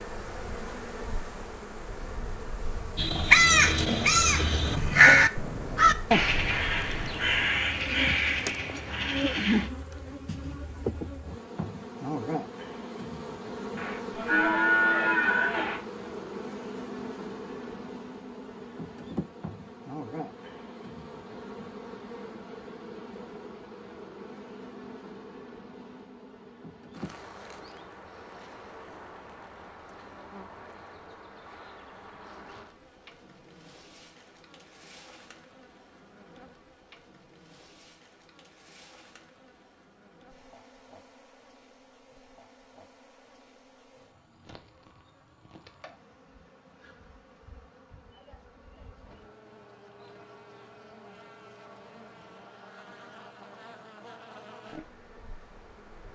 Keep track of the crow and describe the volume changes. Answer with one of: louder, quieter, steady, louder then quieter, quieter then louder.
quieter.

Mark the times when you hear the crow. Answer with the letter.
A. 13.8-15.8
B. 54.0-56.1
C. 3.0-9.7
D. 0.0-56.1
C.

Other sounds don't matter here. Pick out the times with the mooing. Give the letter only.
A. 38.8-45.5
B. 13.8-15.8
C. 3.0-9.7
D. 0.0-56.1
B.